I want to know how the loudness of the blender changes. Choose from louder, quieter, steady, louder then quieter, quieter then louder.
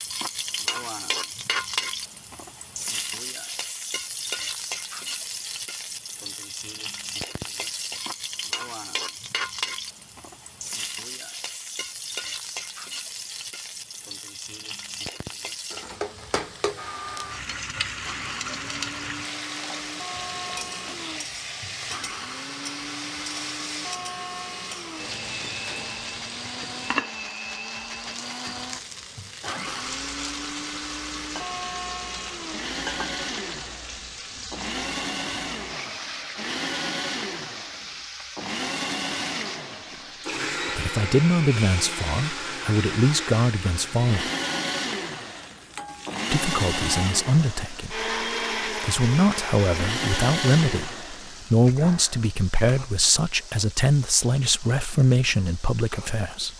louder.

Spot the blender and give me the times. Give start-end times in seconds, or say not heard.
16.8-51.8.